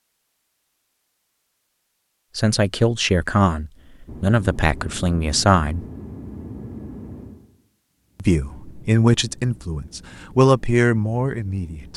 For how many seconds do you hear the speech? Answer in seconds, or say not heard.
7 s.